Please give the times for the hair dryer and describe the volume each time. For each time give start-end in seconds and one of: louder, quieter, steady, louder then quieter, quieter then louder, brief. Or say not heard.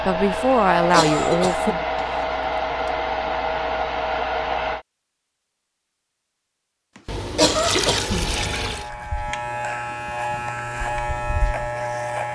0.0-4.8 steady.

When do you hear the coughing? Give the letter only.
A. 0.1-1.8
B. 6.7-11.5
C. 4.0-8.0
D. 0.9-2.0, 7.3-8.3
D.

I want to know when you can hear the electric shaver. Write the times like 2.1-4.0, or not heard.
8.3-12.3.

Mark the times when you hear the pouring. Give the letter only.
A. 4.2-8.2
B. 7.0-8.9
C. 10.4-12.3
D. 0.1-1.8
B.